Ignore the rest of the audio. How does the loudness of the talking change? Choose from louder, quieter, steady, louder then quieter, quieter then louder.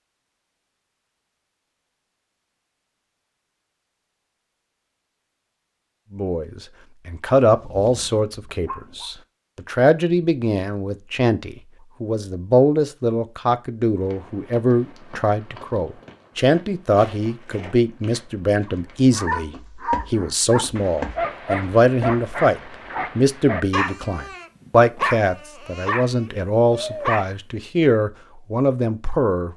steady.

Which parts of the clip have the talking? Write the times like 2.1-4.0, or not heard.
6.1-29.5.